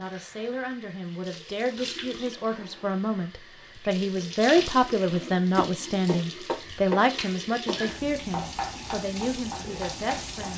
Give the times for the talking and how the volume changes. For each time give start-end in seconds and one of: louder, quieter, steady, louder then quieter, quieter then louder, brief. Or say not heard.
0.0-10.5 louder then quieter.